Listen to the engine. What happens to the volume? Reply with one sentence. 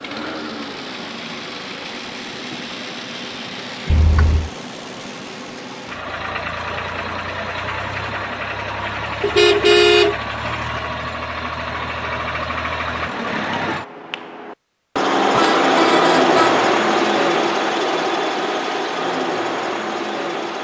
The volume of the engine goes up.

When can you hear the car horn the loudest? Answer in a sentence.
The volume of the car horn peaks at 10 seconds.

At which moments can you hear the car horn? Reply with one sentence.
You can hear the car horn from 3.9 to 4.5 s, from 9.2 to 10.2 s and from 15.3 to 16.6 s.